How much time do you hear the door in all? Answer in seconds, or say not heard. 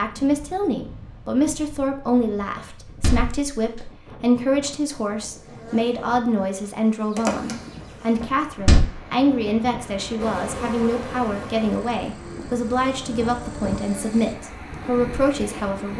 2 s.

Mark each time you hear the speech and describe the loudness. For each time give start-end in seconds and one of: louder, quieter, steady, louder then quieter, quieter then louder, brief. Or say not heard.
0.0-15.9 steady.